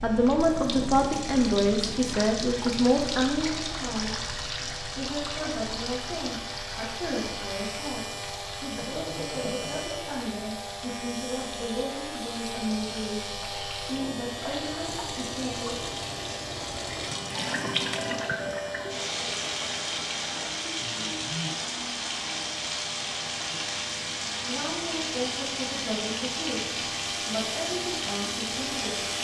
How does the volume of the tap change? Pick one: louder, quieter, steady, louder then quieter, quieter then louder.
quieter then louder.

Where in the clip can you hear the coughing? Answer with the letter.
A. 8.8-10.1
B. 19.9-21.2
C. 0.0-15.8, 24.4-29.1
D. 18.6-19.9
A.